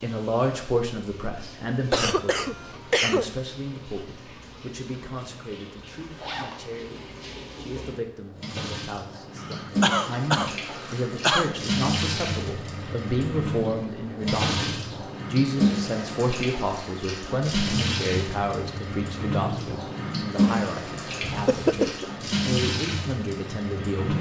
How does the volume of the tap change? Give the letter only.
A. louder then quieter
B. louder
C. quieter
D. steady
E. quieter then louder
B.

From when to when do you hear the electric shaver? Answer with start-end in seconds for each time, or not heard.
not heard.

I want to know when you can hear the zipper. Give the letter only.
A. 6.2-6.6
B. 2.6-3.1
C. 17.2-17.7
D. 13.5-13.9
A.